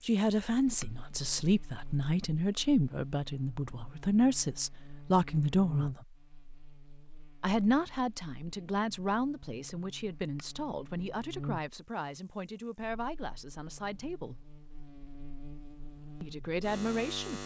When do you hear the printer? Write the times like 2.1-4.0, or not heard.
not heard.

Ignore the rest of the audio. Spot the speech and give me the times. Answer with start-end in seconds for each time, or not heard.
0.0-6.0, 7.4-14.3, 16.2-17.4.